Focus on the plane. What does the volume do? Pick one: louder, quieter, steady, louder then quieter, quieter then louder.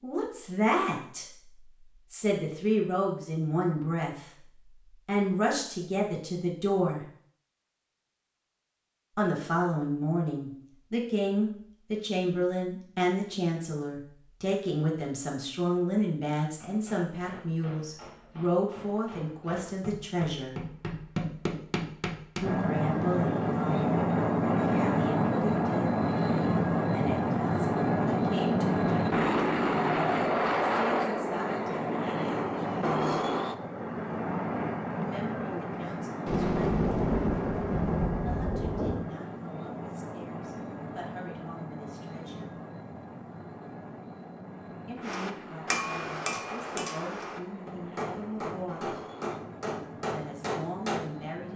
quieter.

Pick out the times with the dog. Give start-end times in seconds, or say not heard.
not heard.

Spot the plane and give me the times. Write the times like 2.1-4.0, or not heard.
22.4-51.5.